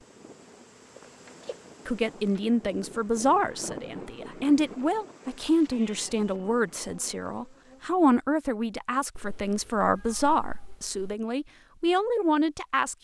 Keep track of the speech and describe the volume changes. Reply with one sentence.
The loudness of the speech stays about the same.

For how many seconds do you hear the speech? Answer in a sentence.
You can hear the speech for 11 seconds altogether.